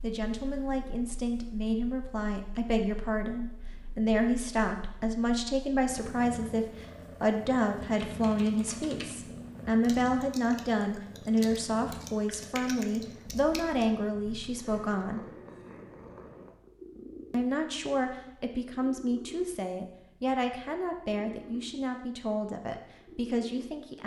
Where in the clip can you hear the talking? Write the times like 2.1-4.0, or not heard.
0.0-15.2, 17.3-24.0.